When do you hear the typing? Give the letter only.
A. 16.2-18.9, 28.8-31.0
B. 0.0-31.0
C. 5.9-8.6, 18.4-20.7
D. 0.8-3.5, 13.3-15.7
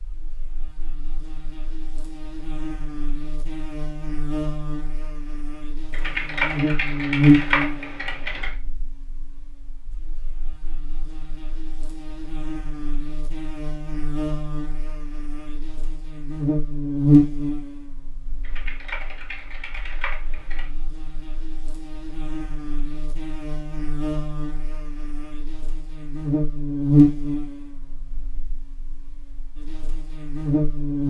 C.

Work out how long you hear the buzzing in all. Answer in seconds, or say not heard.
31 s.